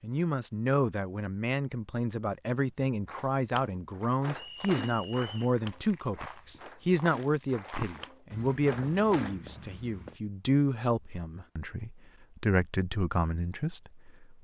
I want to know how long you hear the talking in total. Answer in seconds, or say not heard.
14 s.